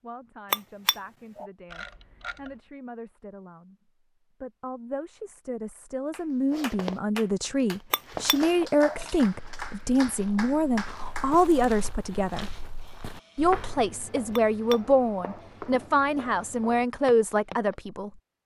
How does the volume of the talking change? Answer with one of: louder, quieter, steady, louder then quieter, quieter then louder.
louder.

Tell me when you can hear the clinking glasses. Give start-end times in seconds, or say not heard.
0.5-1.5, 7.9-9.1, 14.3-15.4.